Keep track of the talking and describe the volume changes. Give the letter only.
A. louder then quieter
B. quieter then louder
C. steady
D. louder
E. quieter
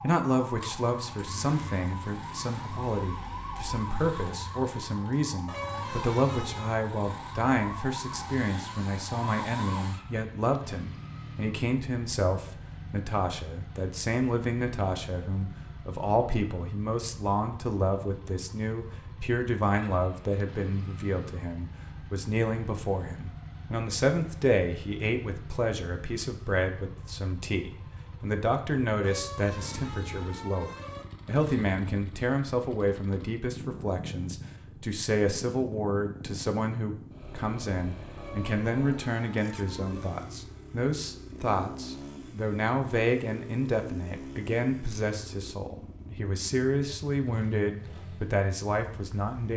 C.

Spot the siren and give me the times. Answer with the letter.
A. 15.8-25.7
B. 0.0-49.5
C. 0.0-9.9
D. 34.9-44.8
C.